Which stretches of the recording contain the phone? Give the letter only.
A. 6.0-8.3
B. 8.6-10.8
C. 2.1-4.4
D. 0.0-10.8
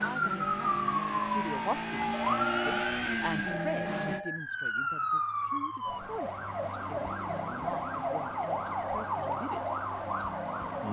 C.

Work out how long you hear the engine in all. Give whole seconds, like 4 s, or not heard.
4 s.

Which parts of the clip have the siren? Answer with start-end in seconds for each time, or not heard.
0.0-10.8.